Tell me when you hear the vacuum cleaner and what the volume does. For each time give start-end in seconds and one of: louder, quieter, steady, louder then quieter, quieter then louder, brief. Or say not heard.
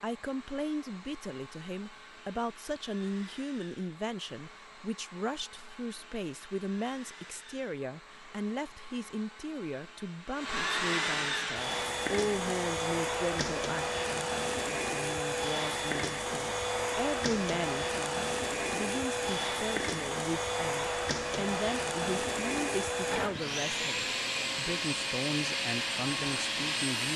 0.0-27.1 louder.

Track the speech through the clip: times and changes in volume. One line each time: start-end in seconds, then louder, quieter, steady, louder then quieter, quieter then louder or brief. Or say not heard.
0.0-27.1 steady.